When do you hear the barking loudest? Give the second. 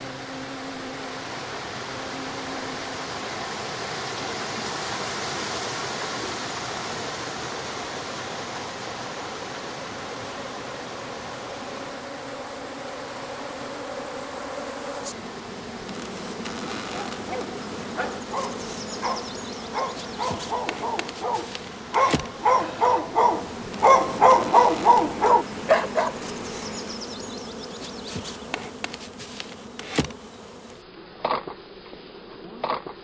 24 s.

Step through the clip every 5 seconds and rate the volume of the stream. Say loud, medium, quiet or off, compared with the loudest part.
loud, loud, medium, medium, medium, medium, off.